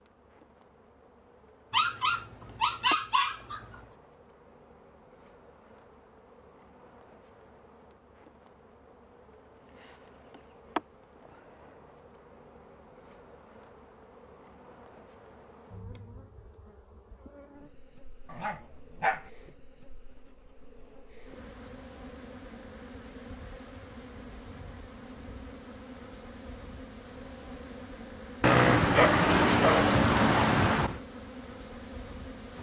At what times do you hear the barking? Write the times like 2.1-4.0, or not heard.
1.7-3.8, 18.2-19.3, 28.4-31.0.